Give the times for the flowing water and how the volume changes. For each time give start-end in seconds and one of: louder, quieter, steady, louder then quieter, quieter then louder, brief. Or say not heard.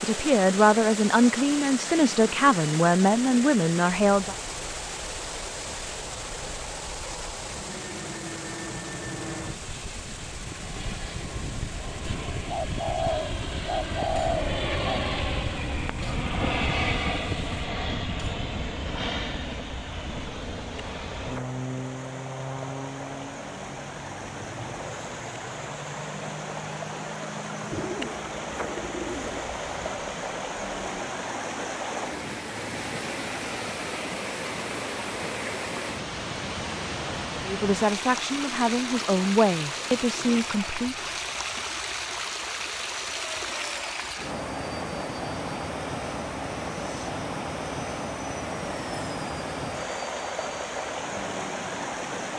0.0-52.3 quieter then louder.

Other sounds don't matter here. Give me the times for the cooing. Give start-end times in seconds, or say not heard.
12.5-15.0, 27.7-29.8.